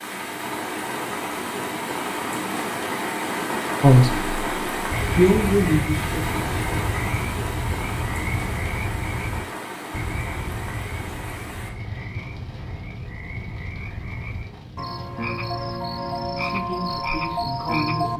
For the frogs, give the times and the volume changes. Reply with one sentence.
The frogs can be heard from 4.9 to 18.1 s, getting quieter then louder.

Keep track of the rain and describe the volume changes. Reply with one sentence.
The volume of the rain goes down.